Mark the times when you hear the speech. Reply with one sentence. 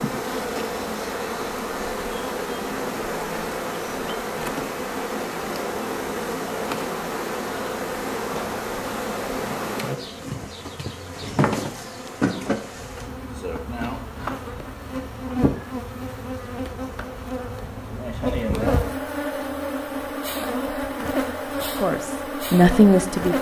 You can hear the speech from 21.6 to 23.3 s.